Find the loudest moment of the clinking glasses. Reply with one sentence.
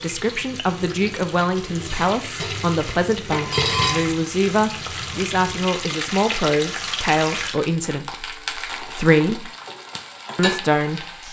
The volume of the clinking glasses peaks at 4 seconds.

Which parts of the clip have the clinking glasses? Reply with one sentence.
The clinking glasses can be heard from 2.4 to 4.2 s.